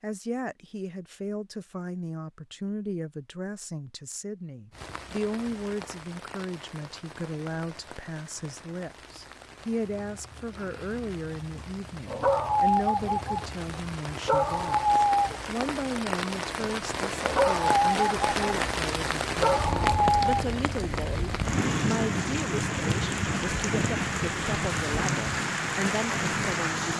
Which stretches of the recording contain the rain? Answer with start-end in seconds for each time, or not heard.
4.7-26.9.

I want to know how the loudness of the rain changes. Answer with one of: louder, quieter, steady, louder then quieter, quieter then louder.
louder.